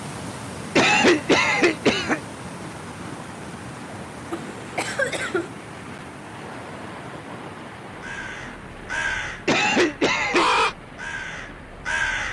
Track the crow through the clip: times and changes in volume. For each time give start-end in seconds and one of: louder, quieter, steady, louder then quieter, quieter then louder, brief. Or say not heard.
8.0-12.2 louder then quieter.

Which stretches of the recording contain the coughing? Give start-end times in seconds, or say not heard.
0.8-2.2, 4.3-5.5, 9.4-10.6.